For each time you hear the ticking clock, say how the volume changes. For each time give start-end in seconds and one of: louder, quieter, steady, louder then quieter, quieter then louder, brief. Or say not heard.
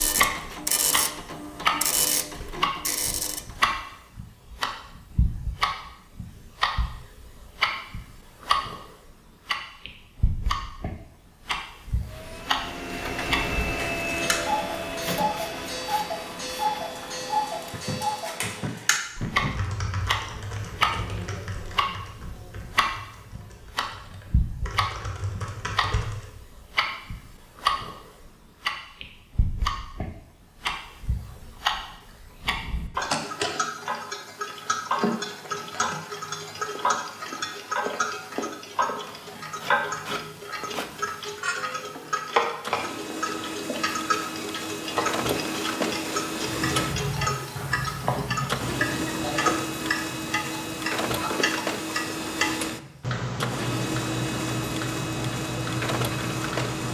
0.0-56.8 steady.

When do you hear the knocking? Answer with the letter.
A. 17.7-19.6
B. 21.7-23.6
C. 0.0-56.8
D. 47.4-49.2
A.